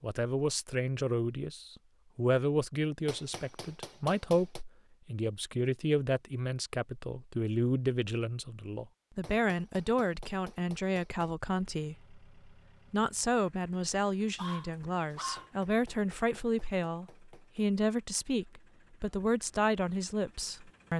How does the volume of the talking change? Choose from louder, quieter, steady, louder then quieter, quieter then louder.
steady.